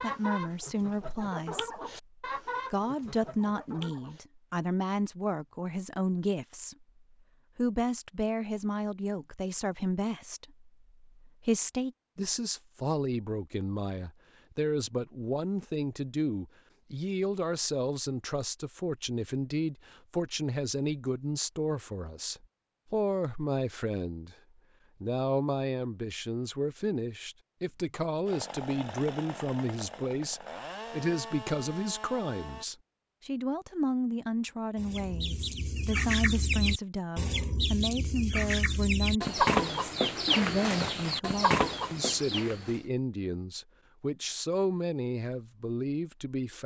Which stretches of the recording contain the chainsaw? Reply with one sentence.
You can hear the chainsaw from 28.2 to 32.6 s.